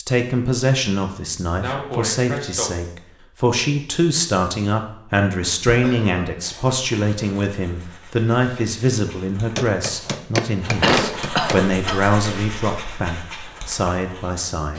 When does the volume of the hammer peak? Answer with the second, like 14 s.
10 s.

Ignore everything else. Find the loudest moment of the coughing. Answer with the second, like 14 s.
11 s.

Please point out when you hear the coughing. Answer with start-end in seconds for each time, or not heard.
1.6-2.9, 5.7-6.8, 10.8-12.1.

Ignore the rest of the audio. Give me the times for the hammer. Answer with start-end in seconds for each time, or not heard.
9.6-11.6.